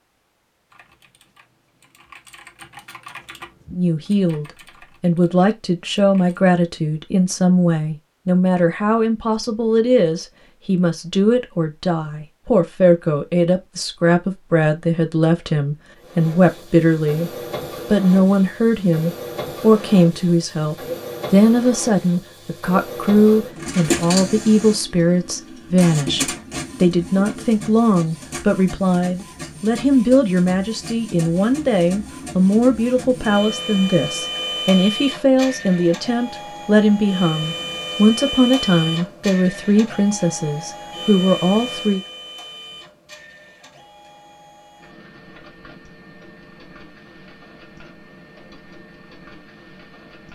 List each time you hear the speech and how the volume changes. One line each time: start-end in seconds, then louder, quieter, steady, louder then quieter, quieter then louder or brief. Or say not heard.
3.8-42.0 steady.